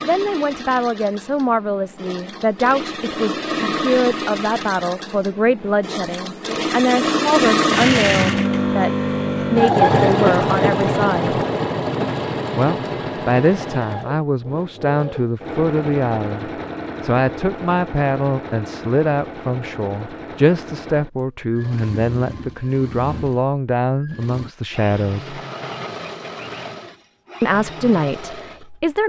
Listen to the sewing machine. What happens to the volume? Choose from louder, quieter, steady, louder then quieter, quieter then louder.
louder then quieter.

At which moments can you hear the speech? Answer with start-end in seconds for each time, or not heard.
0.0-11.3, 12.6-25.4, 27.4-29.0.